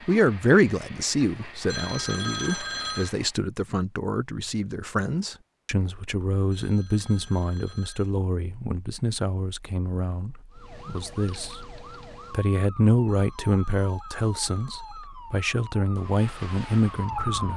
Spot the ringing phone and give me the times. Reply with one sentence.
The ringing phone can be heard from 1.7 to 3.1 s, from 6.5 to 8.2 s and from 13.1 to 15.1 s.